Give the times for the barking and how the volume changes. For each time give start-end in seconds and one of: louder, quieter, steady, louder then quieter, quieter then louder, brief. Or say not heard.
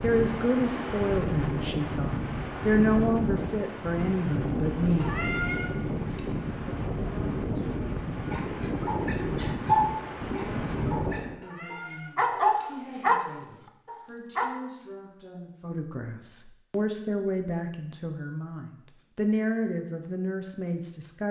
8.3-14.5 quieter then louder.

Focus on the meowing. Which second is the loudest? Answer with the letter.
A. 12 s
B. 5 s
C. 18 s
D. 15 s
B.